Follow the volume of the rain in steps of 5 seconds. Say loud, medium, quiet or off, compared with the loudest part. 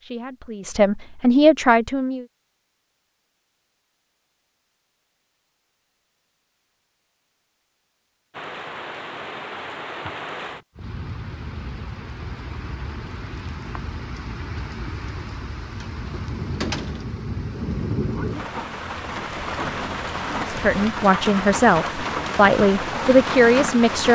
off, medium, medium, loud, loud.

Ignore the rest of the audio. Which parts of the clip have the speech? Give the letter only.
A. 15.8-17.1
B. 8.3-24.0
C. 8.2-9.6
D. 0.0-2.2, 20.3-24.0
D.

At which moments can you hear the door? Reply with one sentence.
You can hear the door from 15.8 to 17.1 s.